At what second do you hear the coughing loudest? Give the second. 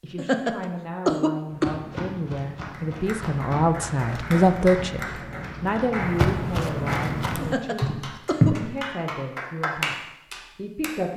1 s.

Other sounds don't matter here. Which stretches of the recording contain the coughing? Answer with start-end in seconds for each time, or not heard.
0.1-1.8, 7.4-8.6.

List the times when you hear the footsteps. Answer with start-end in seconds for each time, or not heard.
1.5-8.7.